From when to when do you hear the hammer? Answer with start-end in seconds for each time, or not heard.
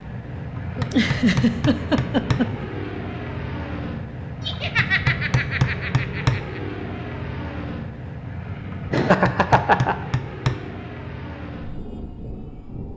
0.6-2.5, 4.5-6.5, 8.7-10.6.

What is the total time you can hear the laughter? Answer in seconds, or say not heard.
5 s.